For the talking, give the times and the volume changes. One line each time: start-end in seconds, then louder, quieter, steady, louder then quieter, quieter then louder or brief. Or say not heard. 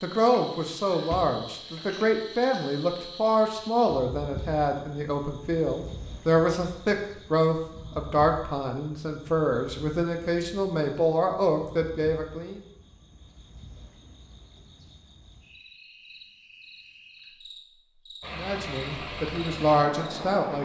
0.0-12.6 steady
18.3-20.5 brief.